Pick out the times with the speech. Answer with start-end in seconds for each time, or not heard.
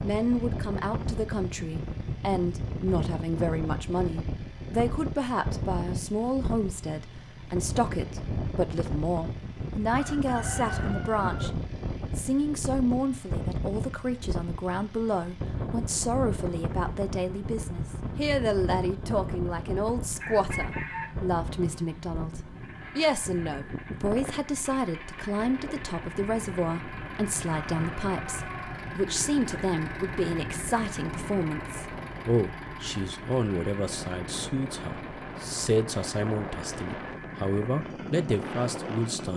0.0-11.5, 12.2-39.3.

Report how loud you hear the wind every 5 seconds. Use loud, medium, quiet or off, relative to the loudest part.
loud, loud, loud, loud, loud, medium, medium, loud.